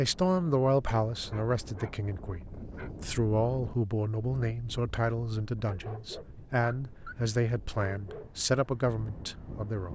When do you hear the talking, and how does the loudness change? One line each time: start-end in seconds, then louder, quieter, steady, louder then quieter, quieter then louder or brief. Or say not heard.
0.0-9.9 steady.